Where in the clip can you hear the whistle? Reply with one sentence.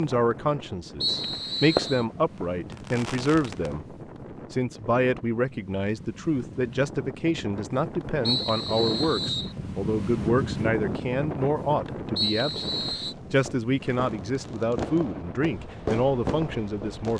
You can hear the whistle from 1.0 to 2.0 s, from 8.2 to 9.6 s and from 12.2 to 13.2 s.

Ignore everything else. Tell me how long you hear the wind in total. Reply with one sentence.
The wind can be heard for 17 seconds in total.